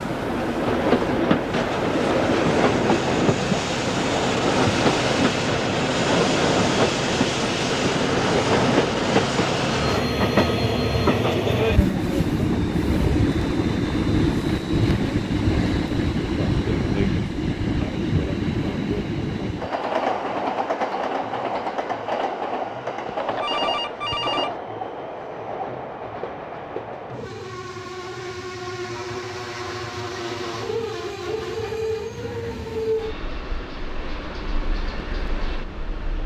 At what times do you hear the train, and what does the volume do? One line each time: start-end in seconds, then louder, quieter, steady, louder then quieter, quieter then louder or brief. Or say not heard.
0.0-36.2 quieter.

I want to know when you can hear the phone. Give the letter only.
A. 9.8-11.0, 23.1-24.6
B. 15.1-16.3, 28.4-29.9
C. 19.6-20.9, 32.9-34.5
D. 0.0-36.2
A.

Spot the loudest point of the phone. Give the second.
24 s.